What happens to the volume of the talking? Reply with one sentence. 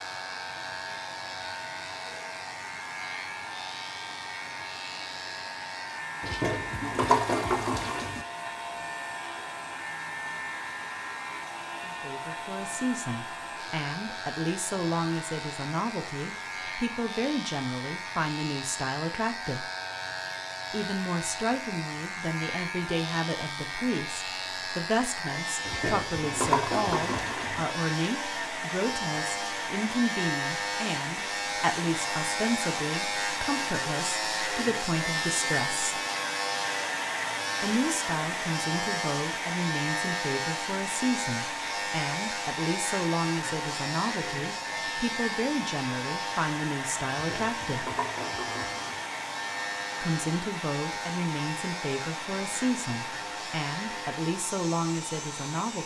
The volume of the talking stays about the same.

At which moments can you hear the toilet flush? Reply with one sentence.
The toilet flush can be heard from 6.2 to 8.2 s, from 25.6 to 27.6 s and from 47.1 to 49.0 s.